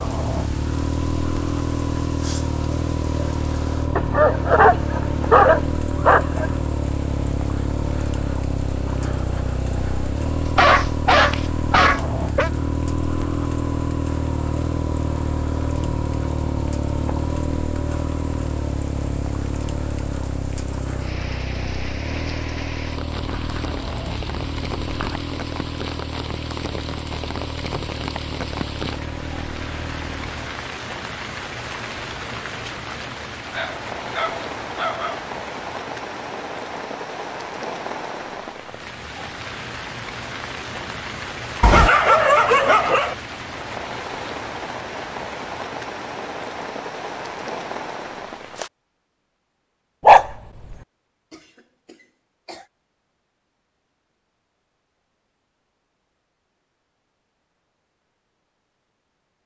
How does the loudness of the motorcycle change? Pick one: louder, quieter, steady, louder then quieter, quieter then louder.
quieter.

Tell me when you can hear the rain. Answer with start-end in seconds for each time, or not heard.
0.0-48.7.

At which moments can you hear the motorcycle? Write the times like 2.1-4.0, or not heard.
0.0-30.6.